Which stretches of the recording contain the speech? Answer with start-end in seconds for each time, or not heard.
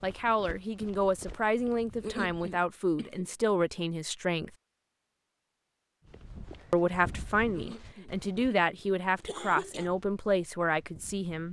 0.0-4.5, 6.7-11.4.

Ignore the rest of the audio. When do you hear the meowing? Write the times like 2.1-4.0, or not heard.
not heard.